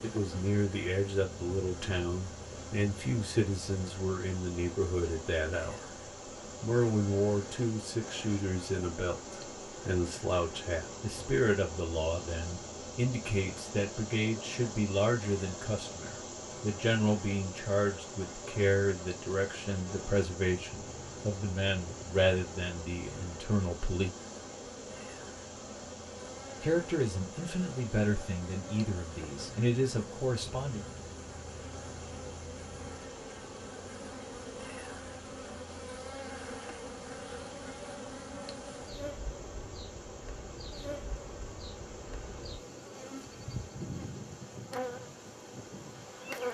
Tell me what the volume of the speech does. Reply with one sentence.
The volume of the speech stays about the same.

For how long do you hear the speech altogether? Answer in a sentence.
The speech can be heard for 28 seconds in total.